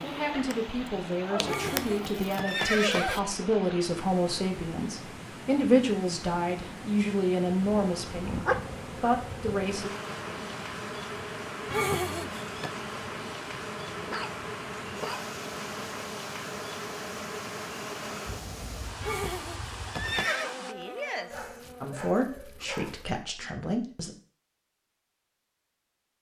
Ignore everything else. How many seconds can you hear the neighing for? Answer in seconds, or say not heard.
4 s.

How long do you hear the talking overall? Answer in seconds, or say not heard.
12 s.